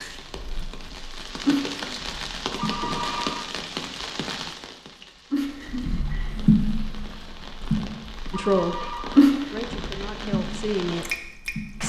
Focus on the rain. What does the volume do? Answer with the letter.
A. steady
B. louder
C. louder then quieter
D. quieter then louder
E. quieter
D.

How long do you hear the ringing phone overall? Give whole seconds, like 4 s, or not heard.
2 s.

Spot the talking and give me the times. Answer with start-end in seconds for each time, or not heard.
8.3-11.8.